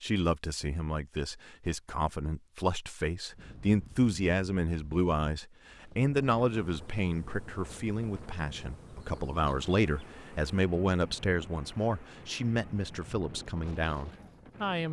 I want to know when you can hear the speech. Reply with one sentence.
The speech can be heard from 0.0 to 14.8 s.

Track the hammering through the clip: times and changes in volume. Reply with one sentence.
You can't hear the hammering here.